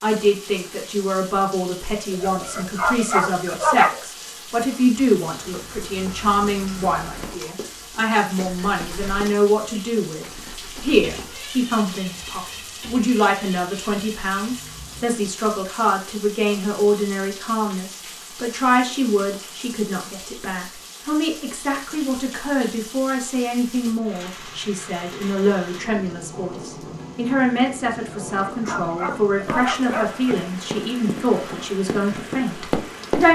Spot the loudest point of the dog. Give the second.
4 s.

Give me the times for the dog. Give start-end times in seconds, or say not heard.
2.1-4.0, 28.0-30.4.